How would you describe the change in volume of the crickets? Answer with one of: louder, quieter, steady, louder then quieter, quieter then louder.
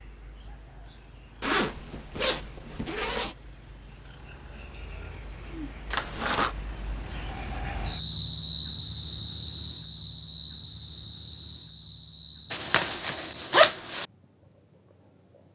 louder then quieter.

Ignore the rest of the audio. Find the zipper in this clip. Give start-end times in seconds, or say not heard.
1.4-3.4, 5.9-6.5, 12.5-14.1.